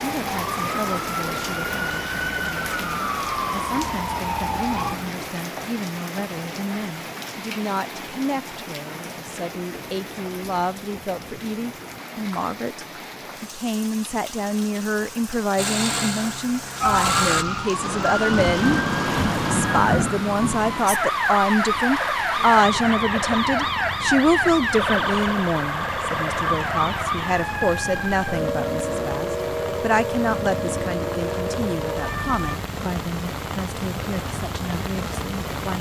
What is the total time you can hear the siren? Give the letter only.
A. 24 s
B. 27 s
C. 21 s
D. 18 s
C.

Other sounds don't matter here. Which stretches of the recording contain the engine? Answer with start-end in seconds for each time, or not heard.
15.6-17.4.